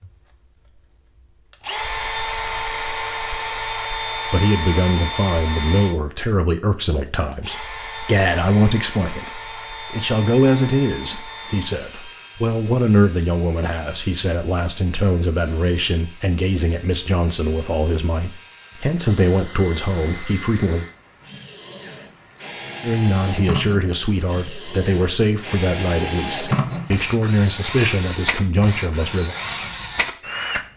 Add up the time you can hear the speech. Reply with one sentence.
You can hear the speech for 23 seconds altogether.